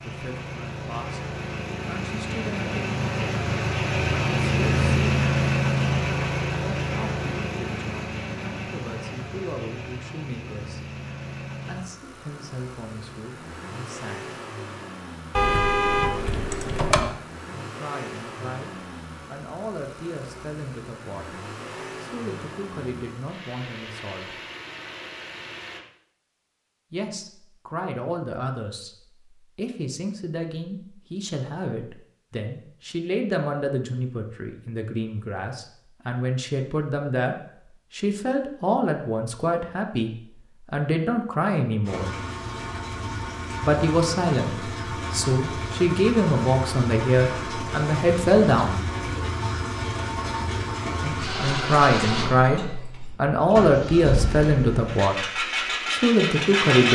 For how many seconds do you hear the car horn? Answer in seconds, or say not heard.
2 s.